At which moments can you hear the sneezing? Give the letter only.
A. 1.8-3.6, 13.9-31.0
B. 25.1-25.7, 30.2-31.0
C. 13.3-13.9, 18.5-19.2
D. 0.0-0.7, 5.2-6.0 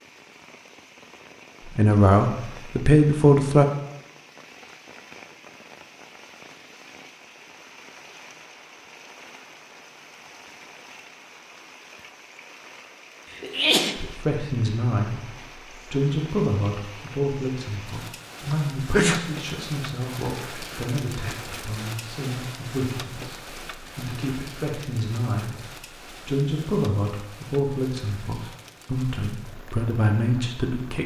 C.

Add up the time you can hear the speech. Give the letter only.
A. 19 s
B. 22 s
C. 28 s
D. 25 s
A.